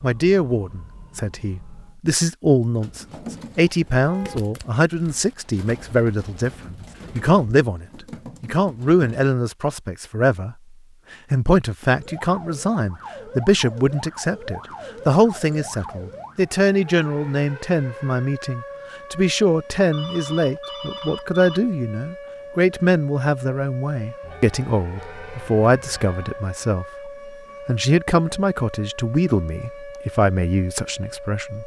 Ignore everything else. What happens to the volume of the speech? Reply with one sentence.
The volume of the speech stays about the same.